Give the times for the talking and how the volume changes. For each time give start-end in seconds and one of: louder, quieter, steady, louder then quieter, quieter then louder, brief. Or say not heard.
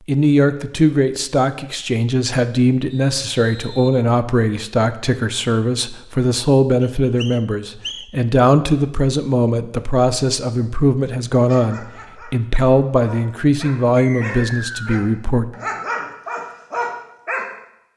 0.1-15.4 steady.